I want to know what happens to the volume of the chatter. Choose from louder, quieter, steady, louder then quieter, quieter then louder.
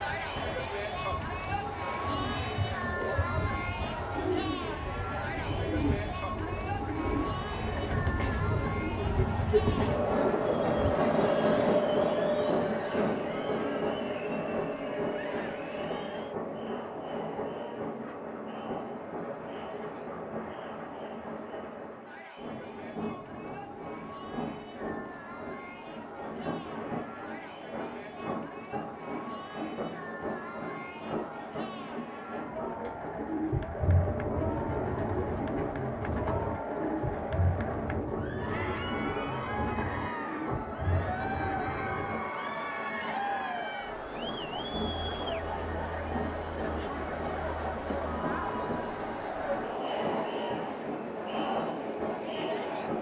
quieter then louder.